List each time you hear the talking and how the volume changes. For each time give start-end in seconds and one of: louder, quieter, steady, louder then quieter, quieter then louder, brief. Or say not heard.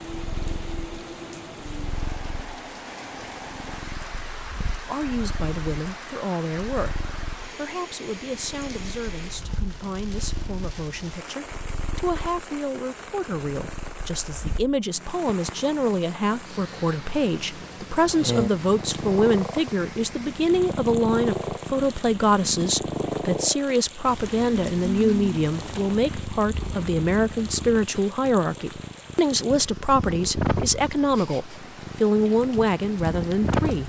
4.8-33.8 louder.